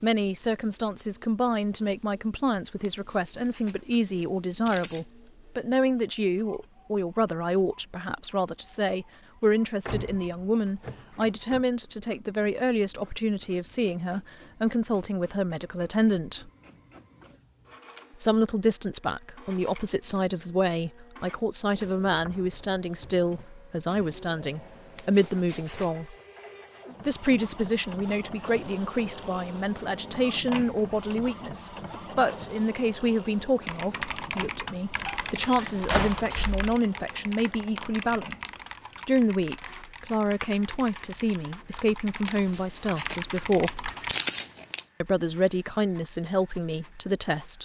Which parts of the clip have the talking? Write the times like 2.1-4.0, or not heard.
0.0-16.5, 18.2-26.1, 27.1-38.4, 39.0-43.9, 45.0-47.6.